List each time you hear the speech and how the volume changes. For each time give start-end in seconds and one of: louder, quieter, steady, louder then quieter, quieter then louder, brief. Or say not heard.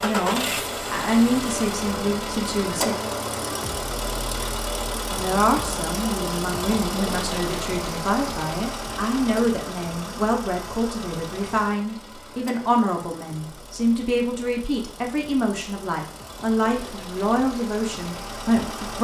0.0-3.0 brief
5.1-18.9 steady.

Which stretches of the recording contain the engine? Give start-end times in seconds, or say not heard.
0.0-18.9.